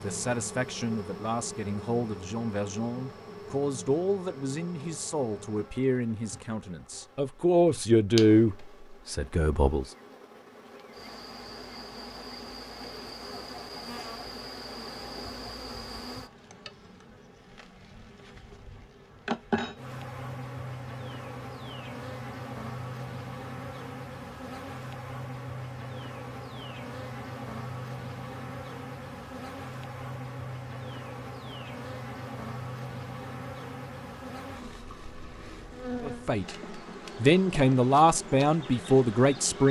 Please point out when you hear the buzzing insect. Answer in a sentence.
The buzzing insect can be heard from 0.0 to 39.6 s.